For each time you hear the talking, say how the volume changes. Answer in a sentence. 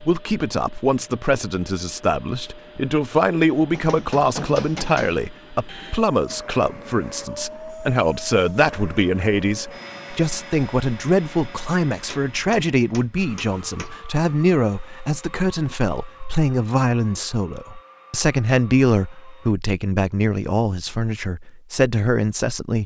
The talking can be heard from 0.0 to 22.8 s, at a steady volume.